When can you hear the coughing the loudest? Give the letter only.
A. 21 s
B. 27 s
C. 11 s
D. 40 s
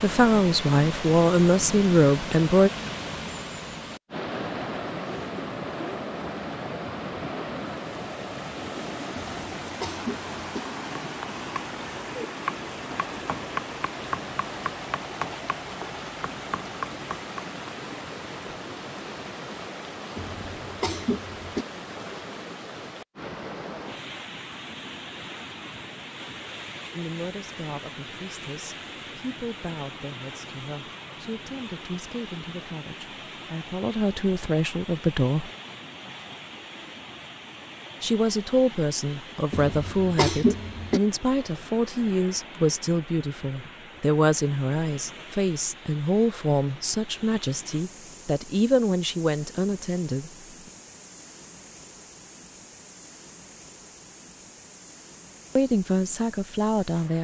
D.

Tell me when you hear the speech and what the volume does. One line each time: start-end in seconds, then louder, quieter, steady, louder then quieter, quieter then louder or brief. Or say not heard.
0.0-2.7 brief
26.9-35.5 louder
38.0-50.3 steady
55.5-57.1 brief.